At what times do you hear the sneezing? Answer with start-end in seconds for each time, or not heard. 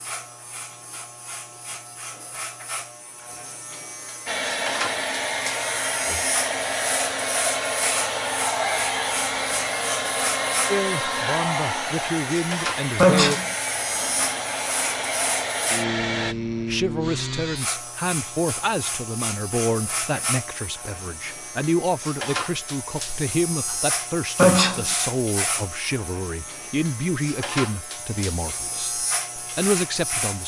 13.0-13.4, 24.4-24.9.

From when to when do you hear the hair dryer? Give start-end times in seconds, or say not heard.
4.2-16.4.